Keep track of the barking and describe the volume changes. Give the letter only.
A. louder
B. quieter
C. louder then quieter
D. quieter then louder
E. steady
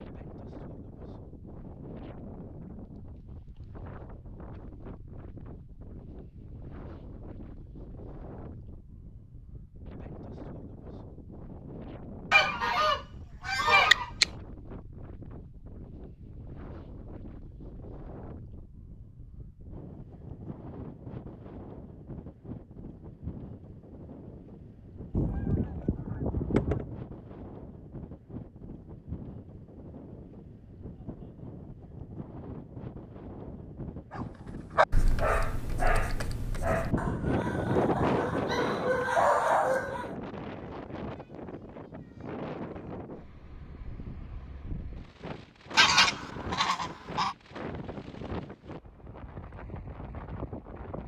D.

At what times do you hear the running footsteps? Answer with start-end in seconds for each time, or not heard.
not heard.